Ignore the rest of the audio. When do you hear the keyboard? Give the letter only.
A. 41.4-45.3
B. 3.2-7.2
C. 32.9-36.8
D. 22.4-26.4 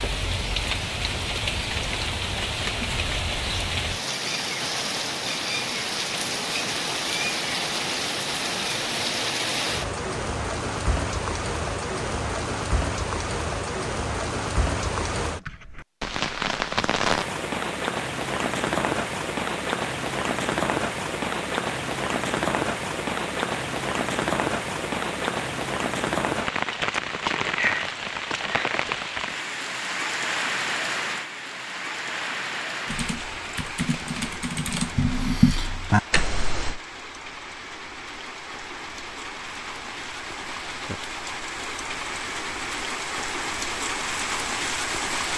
C.